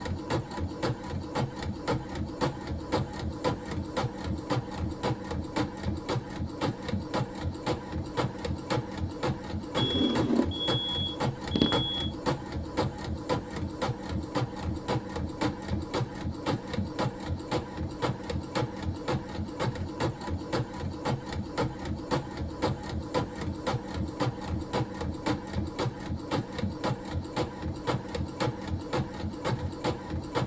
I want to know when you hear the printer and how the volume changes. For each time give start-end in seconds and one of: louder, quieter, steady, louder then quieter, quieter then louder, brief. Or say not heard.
0.0-30.4 steady.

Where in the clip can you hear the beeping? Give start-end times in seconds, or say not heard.
9.8-12.1.